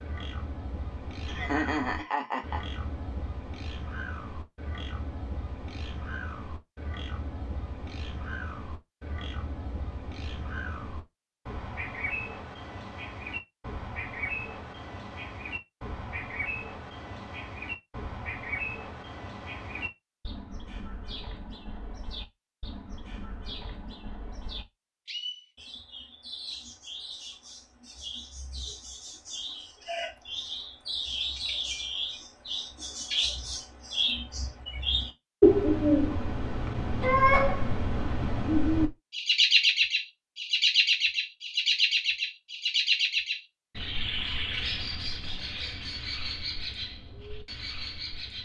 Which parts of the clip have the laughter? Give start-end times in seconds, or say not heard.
1.2-2.6.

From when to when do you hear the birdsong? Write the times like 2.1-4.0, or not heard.
0.0-48.4.